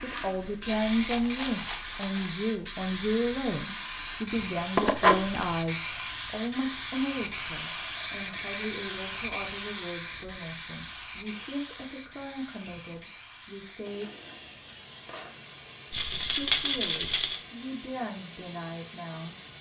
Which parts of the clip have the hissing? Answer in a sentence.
You can hear the hissing from 0.0 to 19.5 s.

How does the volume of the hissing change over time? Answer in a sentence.
The loudness of the hissing goes down.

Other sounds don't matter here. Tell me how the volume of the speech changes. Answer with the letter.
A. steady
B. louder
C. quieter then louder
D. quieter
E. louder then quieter
D.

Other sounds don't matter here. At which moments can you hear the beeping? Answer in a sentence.
The beeping can be heard from 4.8 to 5.5 s.